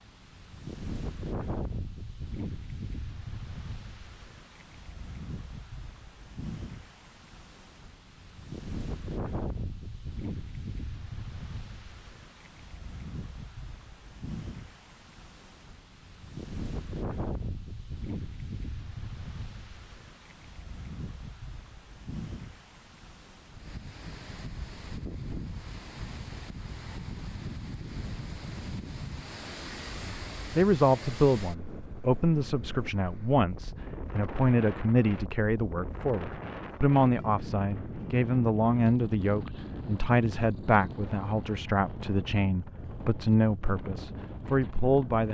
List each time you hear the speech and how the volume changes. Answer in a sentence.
You can hear the speech from 30.1 to 45.2 s, at a steady volume.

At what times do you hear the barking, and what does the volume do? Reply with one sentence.
You can't hear the barking here.